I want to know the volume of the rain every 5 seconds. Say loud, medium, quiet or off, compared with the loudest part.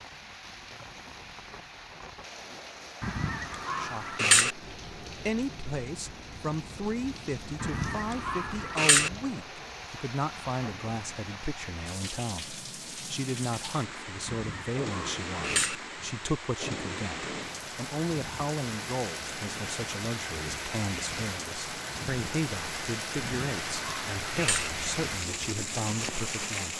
medium, medium, medium, loud, loud, loud.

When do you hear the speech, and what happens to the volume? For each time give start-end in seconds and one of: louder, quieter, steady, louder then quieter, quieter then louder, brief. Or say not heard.
3.8-26.7 steady.